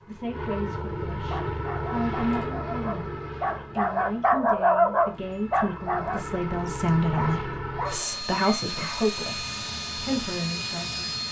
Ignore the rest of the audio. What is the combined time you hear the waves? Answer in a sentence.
You can't hear the waves here.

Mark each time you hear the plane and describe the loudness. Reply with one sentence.
You can hear the plane from 0.0 to 11.2 s, getting quieter then louder.